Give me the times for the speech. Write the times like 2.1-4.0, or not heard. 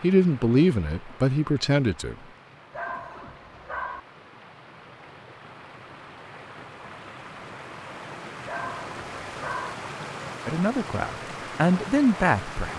0.0-2.1, 10.4-12.7.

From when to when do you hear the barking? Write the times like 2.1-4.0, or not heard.
2.7-4.0, 8.4-9.8.